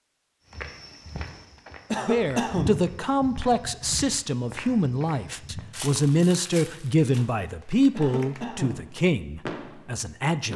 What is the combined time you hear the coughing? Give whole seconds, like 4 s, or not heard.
2 s.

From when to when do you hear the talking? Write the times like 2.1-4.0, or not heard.
2.0-10.5.